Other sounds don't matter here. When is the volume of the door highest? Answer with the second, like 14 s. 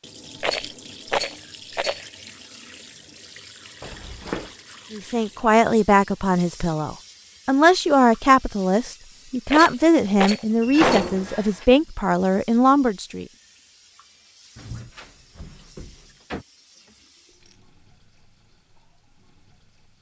11 s.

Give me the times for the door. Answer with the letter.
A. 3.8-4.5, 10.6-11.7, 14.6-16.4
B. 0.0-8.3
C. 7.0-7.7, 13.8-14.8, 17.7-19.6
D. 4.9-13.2
A.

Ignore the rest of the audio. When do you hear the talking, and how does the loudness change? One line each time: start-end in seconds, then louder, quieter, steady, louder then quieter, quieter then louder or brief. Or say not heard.
4.9-13.2 steady.